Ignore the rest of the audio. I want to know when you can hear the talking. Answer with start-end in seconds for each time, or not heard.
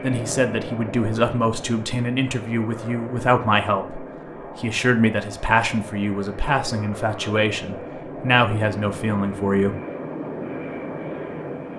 0.0-9.8.